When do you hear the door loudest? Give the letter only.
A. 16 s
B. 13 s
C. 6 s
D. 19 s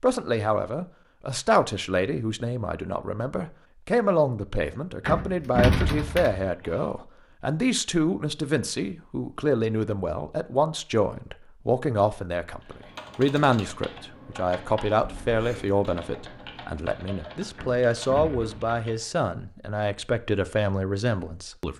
C.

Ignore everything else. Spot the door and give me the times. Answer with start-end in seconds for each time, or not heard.
5.0-6.5, 17.6-18.8.